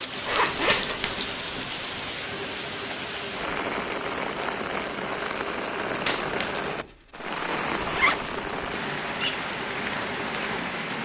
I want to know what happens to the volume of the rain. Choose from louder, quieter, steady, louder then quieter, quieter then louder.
steady.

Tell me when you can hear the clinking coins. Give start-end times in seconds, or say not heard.
0.7-1.3, 6.0-6.7.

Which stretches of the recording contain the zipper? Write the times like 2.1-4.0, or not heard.
0.2-1.1, 7.8-8.3.